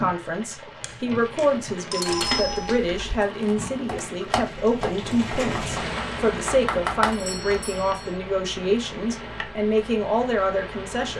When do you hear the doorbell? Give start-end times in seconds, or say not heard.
0.8-2.8, 7.1-8.2.